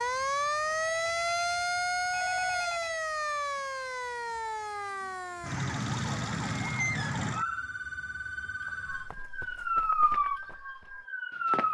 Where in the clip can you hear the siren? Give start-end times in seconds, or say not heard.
0.0-11.7.